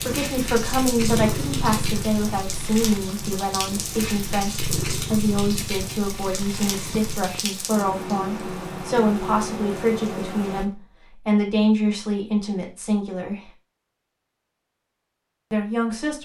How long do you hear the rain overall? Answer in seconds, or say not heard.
11 s.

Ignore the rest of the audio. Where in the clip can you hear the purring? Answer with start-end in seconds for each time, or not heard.
0.0-7.4.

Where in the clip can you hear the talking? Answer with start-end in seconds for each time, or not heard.
0.0-13.5, 15.5-16.2.